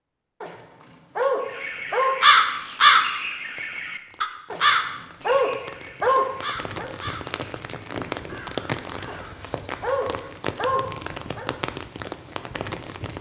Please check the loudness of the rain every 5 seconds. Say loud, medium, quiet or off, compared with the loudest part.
quiet, loud, loud.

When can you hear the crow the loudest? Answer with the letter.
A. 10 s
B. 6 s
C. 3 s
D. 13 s
C.